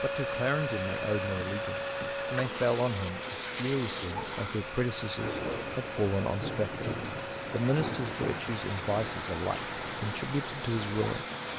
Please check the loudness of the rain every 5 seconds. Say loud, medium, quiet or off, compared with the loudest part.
medium, loud, loud.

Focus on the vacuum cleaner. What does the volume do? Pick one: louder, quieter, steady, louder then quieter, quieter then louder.
quieter.